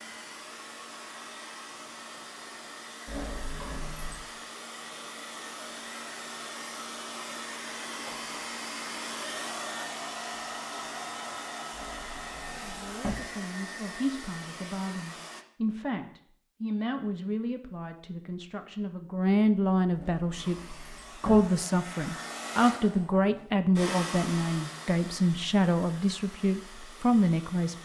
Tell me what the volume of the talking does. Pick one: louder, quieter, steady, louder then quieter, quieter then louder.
louder.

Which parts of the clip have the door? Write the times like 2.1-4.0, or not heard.
3.0-4.3, 11.7-13.2, 19.9-21.4.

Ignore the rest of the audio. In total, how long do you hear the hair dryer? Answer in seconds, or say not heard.
23 s.